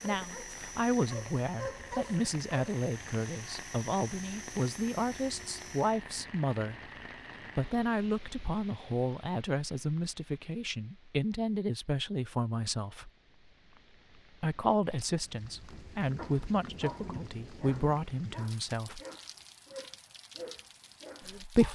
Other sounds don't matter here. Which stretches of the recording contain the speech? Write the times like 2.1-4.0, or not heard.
0.0-6.8, 7.5-13.1, 14.4-19.0, 21.2-21.7.